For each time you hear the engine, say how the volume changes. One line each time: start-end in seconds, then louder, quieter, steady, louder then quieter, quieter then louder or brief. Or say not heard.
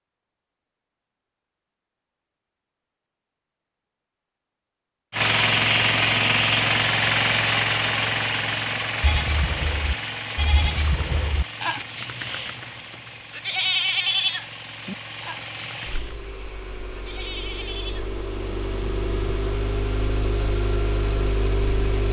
5.1-22.0 quieter then louder.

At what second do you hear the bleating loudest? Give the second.
14 s.